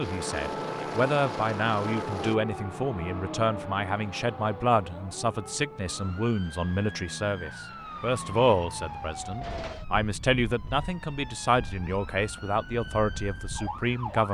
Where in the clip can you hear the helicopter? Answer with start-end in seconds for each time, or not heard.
0.0-2.4.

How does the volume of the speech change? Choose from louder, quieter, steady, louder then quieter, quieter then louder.
steady.